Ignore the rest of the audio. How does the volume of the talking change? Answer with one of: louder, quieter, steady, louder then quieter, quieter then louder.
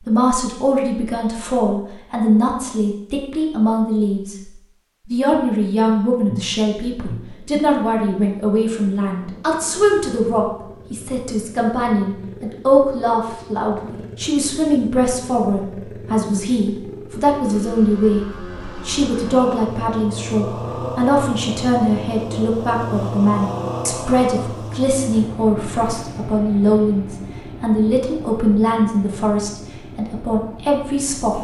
steady.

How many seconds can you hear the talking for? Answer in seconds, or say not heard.
31 s.